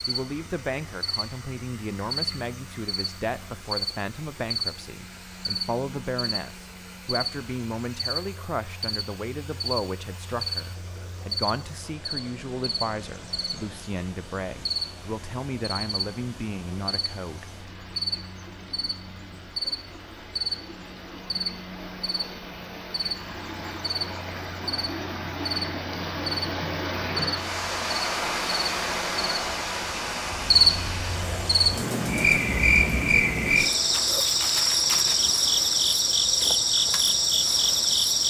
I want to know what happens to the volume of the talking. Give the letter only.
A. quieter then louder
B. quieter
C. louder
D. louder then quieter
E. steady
E.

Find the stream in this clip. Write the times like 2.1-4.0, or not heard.
0.0-38.2.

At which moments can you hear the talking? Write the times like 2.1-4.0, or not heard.
0.1-17.6.